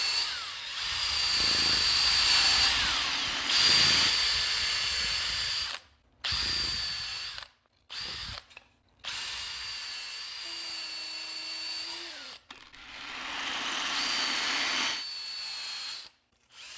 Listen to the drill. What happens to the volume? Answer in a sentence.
The volume of the drill goes down.